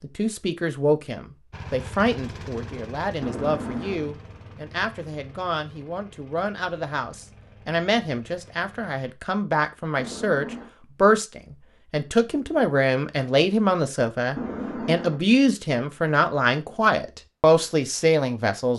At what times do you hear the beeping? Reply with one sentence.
The beeping can be heard from 3.2 to 4.2 s, from 9.9 to 10.7 s and from 14.3 to 15.2 s.